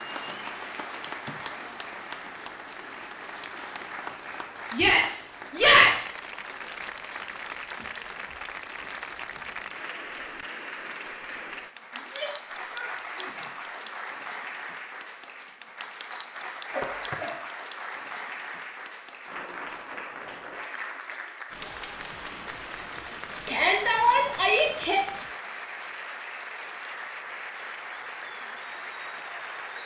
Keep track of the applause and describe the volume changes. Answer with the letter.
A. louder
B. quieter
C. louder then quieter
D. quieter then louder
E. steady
E.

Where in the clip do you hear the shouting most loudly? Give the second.
6 s.